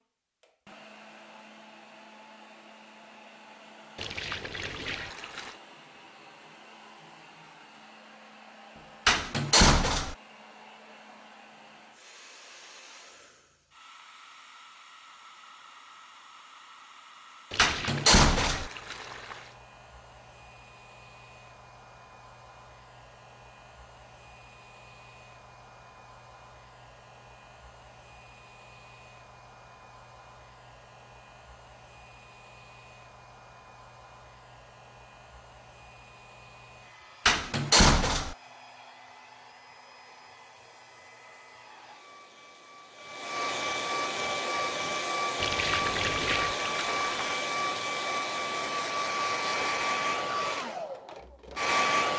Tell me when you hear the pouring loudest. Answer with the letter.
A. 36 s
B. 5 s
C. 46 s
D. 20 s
C.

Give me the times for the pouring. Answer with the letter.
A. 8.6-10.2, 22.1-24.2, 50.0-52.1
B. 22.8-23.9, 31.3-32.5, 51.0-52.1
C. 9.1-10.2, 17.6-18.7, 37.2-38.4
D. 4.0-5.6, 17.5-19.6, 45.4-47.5
D.